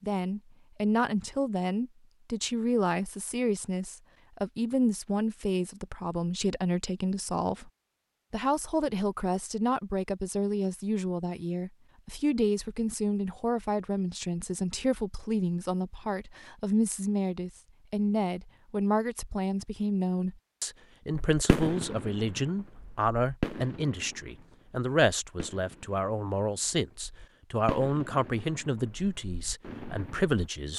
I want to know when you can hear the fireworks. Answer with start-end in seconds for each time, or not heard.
21.3-30.5.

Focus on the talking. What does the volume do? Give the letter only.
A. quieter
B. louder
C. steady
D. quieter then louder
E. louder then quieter
C.